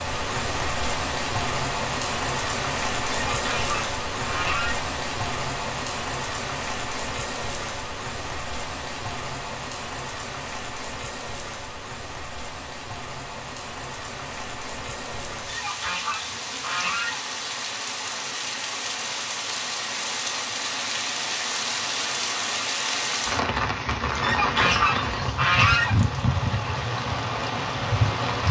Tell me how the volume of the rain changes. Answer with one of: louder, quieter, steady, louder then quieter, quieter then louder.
quieter then louder.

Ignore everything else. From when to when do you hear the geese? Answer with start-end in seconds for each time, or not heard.
3.2-4.8, 15.4-17.2, 24.2-25.9.